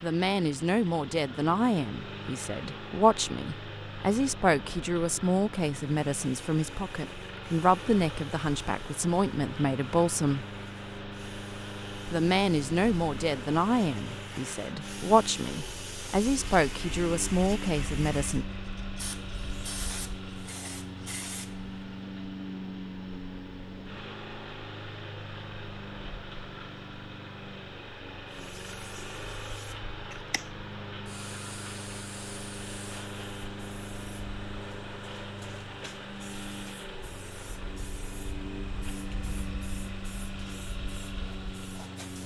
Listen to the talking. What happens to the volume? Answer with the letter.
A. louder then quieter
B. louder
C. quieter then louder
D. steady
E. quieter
D.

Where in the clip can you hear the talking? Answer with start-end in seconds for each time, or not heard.
0.0-10.4, 12.1-18.4.